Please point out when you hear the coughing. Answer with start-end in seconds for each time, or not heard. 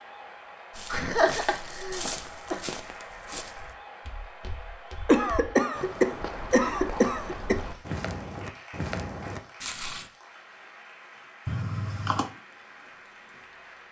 0.9-2.6, 5.0-7.6, 11.4-12.3.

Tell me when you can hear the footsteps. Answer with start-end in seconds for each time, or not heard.
0.7-10.1.